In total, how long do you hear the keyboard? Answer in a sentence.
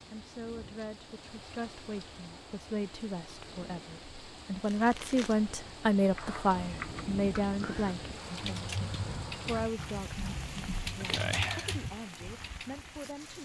You can hear the keyboard for 7 seconds altogether.